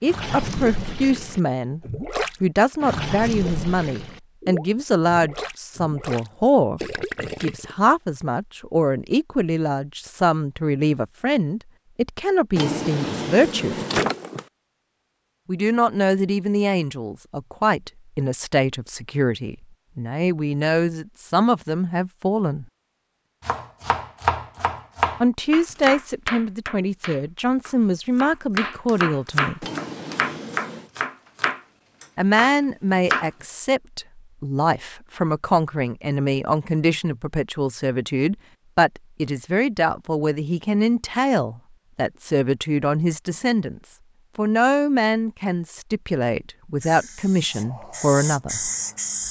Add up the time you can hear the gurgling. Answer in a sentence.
The gurgling can be heard for 8 seconds in total.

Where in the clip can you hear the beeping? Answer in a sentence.
You can't hear the beeping here.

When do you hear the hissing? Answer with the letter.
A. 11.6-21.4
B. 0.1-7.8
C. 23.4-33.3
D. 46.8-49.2
D.